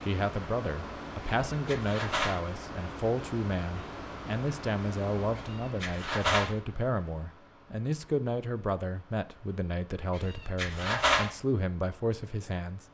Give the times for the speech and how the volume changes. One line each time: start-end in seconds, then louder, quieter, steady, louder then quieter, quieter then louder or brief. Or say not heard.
0.0-12.8 steady.